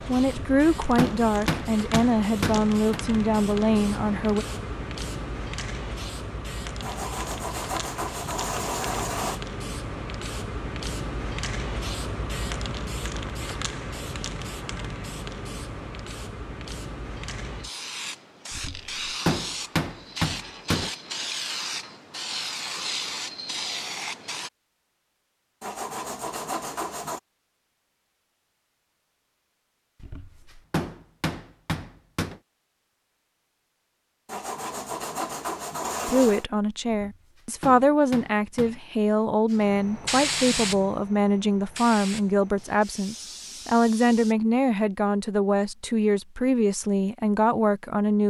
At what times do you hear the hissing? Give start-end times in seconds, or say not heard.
0.0-24.5, 39.5-44.4.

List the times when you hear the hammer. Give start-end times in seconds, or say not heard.
0.2-3.0, 18.5-20.9, 30.0-32.4, 36.9-38.8.